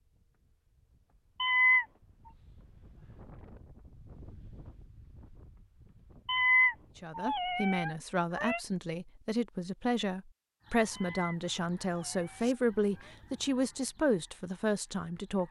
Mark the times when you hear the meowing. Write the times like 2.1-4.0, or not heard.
1.4-1.9, 6.2-8.6, 10.9-13.2.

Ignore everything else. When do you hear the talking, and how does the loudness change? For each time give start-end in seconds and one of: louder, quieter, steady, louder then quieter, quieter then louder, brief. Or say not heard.
7.0-15.4 steady.